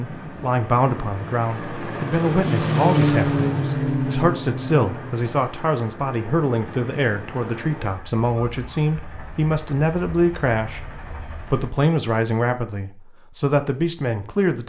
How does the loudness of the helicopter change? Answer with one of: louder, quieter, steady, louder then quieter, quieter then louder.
louder then quieter.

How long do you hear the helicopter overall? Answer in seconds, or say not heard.
12 s.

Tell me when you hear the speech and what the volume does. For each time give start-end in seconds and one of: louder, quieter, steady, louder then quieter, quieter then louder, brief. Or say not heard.
0.0-14.6 steady.